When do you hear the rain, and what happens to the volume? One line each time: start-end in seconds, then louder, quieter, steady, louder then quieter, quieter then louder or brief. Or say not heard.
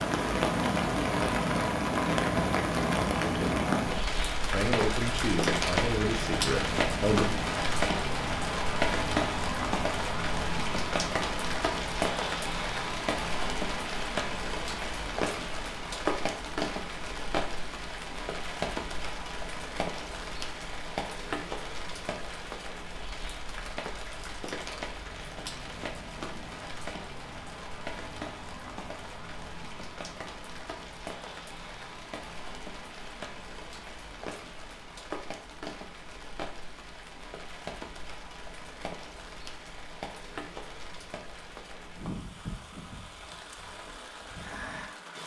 0.0-45.2 quieter.